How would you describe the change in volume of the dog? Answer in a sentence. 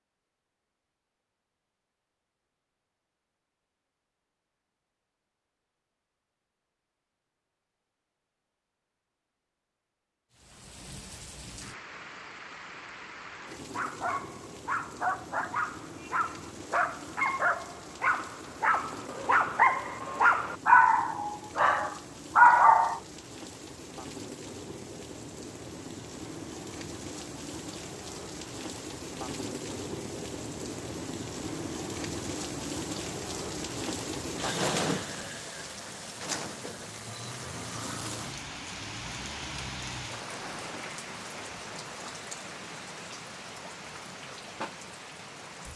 The volume of the dog goes up.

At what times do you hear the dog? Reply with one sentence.
The dog can be heard from 13.6 to 23.0 s.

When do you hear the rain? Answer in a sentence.
The rain can be heard from 10.3 to 45.7 s.